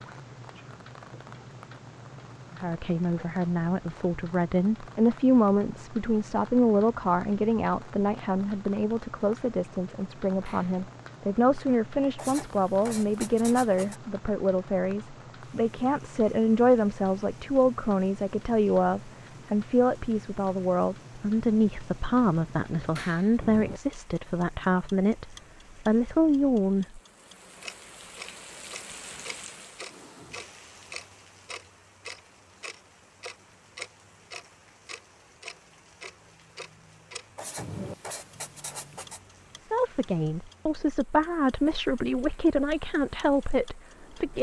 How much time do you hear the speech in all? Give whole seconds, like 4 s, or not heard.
29 s.